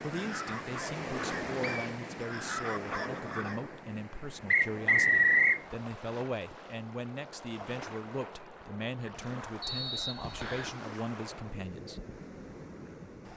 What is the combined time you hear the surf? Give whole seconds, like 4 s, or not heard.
13 s.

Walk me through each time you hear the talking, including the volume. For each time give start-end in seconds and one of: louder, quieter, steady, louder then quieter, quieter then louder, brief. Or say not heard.
0.0-12.0 steady.